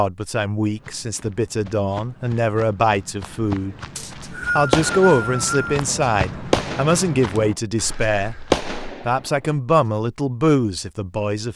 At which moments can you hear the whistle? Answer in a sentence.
The whistle can be heard from 4.0 to 5.8 s.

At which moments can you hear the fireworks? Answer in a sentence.
You can hear the fireworks from 4.2 to 5.3 s, from 6.0 to 7.2 s and from 8.0 to 9.2 s.